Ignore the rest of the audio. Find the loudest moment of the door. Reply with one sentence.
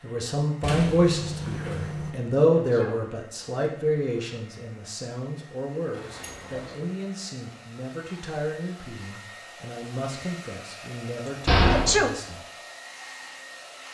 The loudest moment of the door is at 12 seconds.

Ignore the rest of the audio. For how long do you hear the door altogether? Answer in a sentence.
The door can be heard for 3 seconds in total.